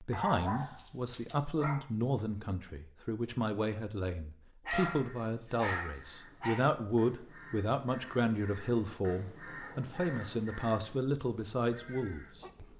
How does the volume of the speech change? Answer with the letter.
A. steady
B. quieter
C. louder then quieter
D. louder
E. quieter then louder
A.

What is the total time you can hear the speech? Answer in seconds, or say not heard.
13 s.